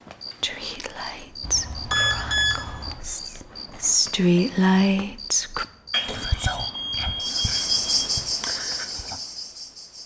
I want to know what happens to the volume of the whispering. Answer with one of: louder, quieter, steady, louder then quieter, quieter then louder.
louder then quieter.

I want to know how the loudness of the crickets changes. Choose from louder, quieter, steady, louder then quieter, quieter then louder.
louder.